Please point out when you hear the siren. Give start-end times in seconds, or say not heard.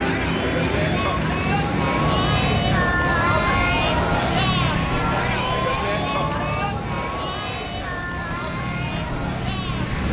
5.1-6.8.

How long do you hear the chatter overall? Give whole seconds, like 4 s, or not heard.
10 s.